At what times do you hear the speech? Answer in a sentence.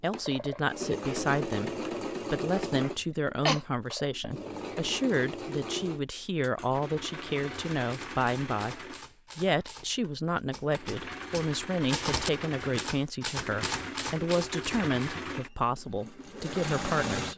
The speech can be heard from 0.0 to 17.3 s.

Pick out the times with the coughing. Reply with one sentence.
You can hear the coughing from 3.0 to 3.6 s.